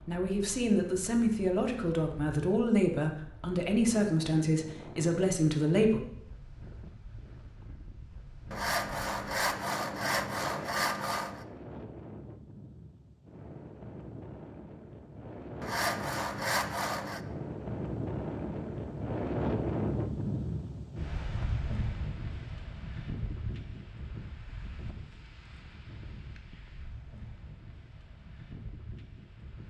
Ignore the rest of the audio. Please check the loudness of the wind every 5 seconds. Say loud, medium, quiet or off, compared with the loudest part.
quiet, quiet, medium, loud, loud, quiet.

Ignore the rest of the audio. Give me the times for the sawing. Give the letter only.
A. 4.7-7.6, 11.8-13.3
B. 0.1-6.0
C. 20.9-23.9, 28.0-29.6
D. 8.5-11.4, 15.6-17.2
D.